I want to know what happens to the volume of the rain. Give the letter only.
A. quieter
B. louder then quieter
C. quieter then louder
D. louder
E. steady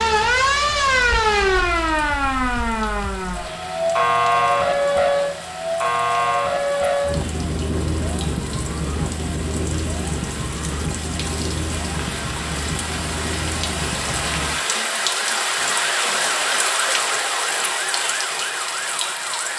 D.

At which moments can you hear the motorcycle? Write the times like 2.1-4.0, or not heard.
not heard.